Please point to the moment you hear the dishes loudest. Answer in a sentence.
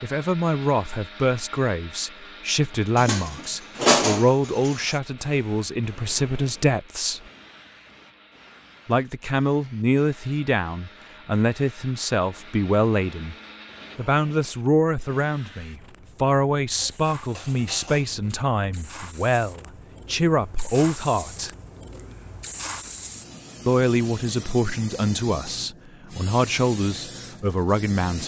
The volume of the dishes peaks at 4 seconds.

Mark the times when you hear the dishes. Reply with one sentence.
The dishes can be heard from 3.0 to 5.0 s and from 16.8 to 18.1 s.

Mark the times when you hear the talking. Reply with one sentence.
You can hear the talking from 0.0 to 7.2 s, from 8.8 to 13.3 s, from 13.9 to 21.5 s and from 23.6 to 28.2 s.